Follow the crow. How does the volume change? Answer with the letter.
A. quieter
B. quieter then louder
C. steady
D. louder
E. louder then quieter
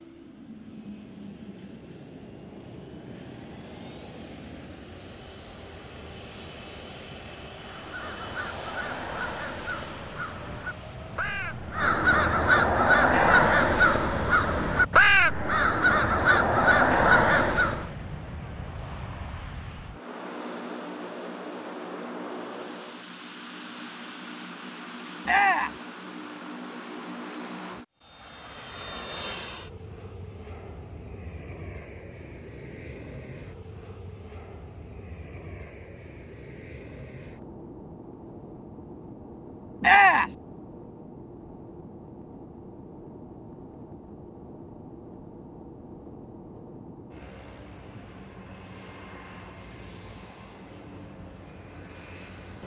D.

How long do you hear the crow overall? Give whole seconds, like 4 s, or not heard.
10 s.